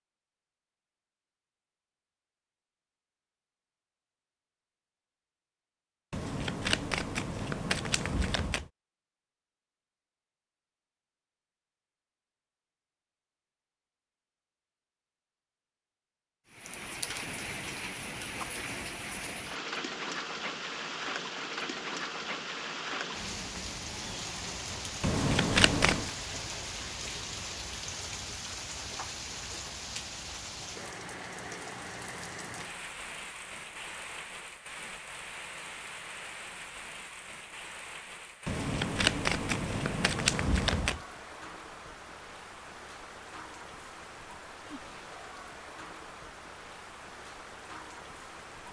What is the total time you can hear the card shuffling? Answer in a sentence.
You can hear the card shuffling for 6 seconds altogether.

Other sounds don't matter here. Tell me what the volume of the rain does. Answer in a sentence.
The volume of the rain goes down.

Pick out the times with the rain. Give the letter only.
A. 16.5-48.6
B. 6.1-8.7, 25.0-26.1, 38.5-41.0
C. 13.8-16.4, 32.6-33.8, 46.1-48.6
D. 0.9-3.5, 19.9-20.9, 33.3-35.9
A.